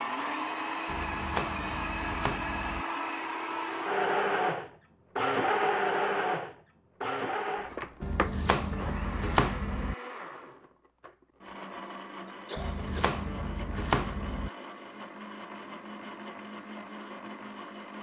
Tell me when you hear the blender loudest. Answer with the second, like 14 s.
6 s.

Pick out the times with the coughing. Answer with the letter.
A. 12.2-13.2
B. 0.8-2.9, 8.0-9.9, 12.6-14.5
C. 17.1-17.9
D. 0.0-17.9
A.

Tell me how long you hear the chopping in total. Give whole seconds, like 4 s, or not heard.
6 s.